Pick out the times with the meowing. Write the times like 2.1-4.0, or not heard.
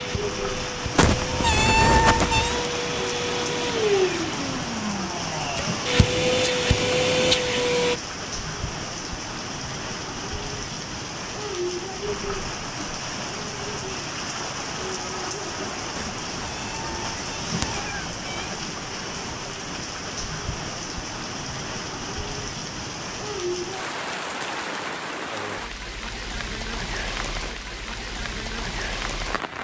0.9-2.7, 15.9-18.5.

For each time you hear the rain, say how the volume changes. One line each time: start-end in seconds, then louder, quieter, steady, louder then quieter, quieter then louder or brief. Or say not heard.
0.0-29.5 steady.